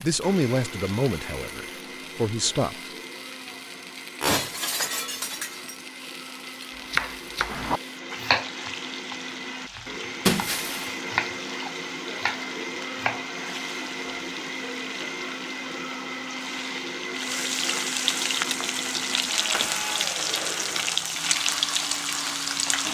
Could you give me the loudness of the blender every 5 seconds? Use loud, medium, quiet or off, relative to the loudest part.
medium, medium, loud, loud, loud.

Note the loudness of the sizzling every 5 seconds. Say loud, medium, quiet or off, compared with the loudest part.
quiet, quiet, quiet, loud, loud.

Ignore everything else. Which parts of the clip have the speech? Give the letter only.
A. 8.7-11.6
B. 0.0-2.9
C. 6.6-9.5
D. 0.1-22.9
B.